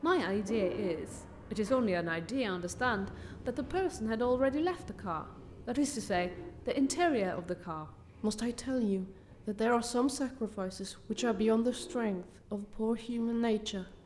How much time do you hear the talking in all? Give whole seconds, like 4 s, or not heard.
14 s.